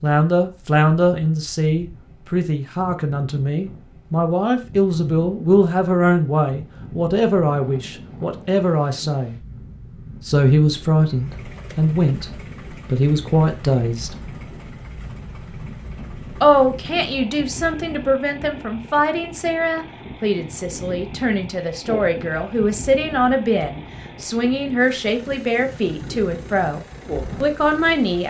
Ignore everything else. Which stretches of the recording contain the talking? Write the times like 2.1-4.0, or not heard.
0.0-9.3, 10.2-12.2, 12.8-14.2, 16.4-28.2.